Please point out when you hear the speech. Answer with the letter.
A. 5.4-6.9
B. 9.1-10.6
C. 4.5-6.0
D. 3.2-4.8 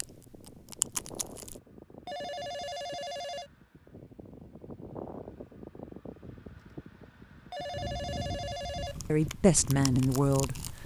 B.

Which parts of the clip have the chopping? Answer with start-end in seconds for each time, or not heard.
not heard.